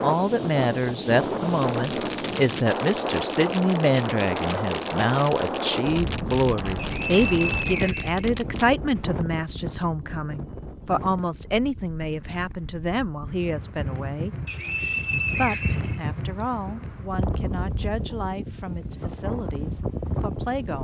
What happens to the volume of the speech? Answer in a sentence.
The loudness of the speech goes down.